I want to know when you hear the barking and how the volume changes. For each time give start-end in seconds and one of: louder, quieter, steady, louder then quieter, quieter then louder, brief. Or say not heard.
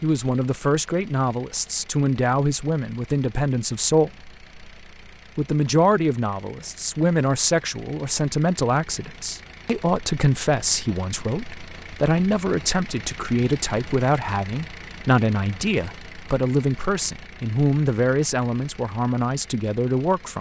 not heard.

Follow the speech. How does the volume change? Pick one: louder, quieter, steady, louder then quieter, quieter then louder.
steady.